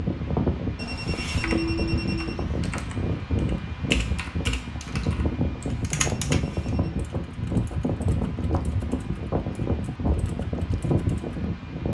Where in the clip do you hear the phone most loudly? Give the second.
2 s.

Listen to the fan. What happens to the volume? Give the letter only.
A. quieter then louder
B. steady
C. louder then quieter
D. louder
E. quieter
B.